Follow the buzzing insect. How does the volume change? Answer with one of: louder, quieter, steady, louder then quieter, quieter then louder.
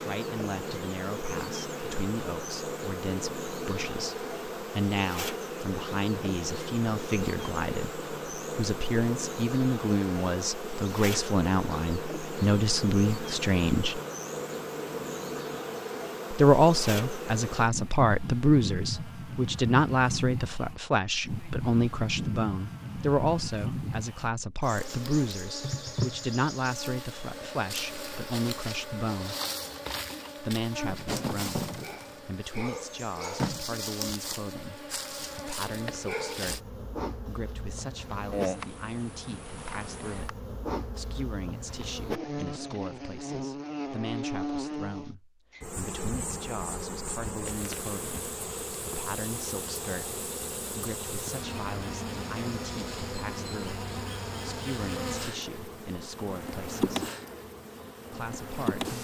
steady.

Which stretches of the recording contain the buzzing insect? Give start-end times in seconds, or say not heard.
0.0-58.9.